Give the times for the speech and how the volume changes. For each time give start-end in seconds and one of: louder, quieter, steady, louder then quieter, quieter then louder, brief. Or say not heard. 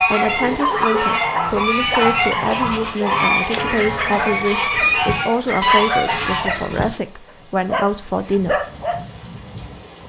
0.1-8.6 steady.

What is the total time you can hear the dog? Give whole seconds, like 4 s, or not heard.
9 s.